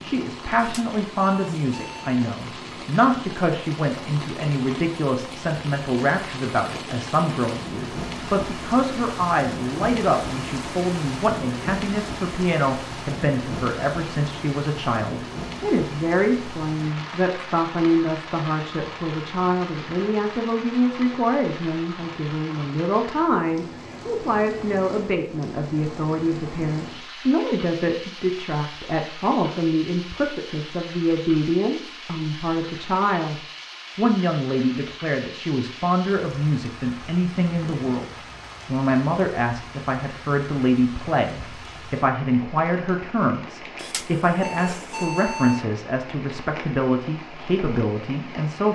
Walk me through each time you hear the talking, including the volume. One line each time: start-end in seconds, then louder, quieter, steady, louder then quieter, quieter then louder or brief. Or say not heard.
0.0-48.6 steady.